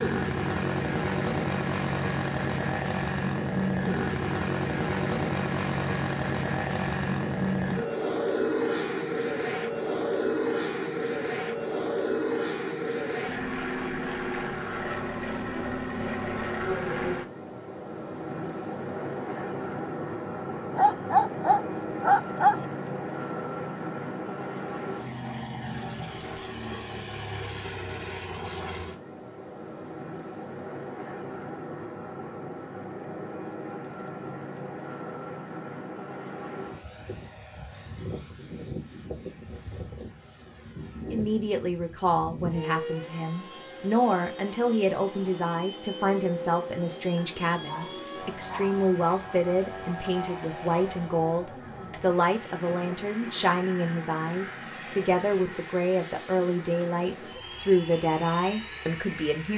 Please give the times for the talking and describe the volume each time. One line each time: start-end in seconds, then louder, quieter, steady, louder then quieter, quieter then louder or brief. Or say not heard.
41.1-59.5 steady.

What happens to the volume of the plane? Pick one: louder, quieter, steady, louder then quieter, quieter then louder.
quieter.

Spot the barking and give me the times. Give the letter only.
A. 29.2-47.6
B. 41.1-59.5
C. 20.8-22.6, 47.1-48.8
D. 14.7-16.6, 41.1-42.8
C.